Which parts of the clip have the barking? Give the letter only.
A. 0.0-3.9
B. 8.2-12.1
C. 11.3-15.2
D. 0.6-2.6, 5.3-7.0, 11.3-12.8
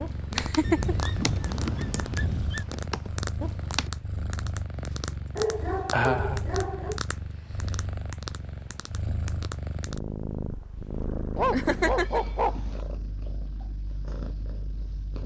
D.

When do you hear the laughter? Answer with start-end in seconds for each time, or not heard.
0.3-0.9, 5.9-6.4, 11.5-12.2.